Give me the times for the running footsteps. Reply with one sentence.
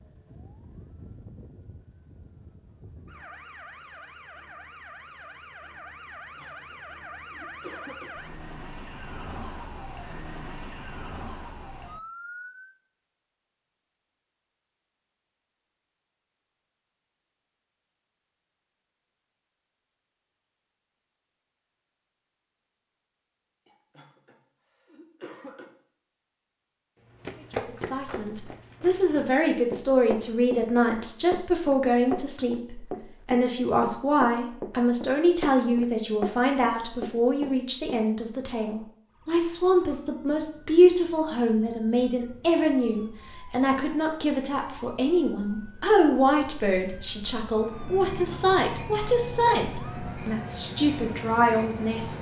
The running footsteps can be heard from 27.1 to 38.0 s.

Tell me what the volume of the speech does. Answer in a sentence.
The loudness of the speech stays about the same.